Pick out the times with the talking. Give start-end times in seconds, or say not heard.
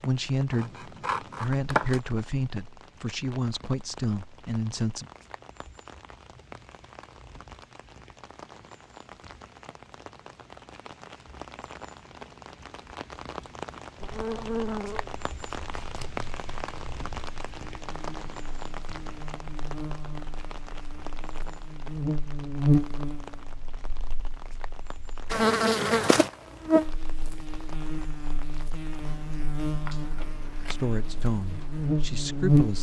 0.0-5.0, 30.6-32.7.